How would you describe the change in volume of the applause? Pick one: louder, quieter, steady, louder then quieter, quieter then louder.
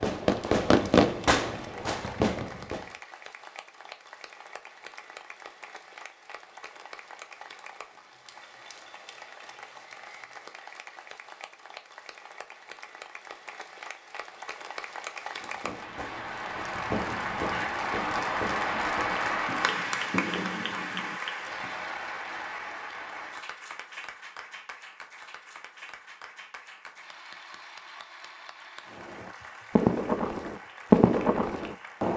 louder then quieter.